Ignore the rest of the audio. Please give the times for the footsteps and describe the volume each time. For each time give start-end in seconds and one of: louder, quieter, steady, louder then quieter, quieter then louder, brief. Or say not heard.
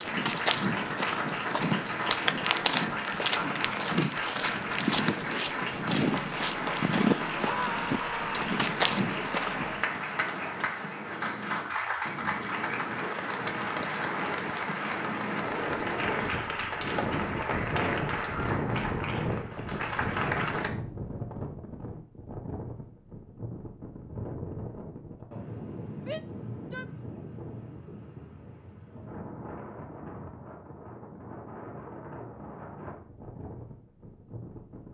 0.0-9.8 steady.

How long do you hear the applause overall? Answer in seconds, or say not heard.
21 s.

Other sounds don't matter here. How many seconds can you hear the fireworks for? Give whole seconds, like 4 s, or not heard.
not heard.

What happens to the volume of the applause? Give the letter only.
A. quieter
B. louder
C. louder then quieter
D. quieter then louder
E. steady
E.